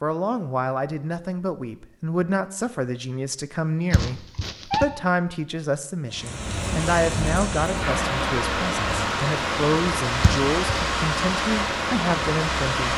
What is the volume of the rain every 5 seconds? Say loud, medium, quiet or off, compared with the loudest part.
off, loud, loud.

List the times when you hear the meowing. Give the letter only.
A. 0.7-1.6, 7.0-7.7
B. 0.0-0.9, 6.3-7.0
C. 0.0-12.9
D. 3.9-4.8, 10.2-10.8
D.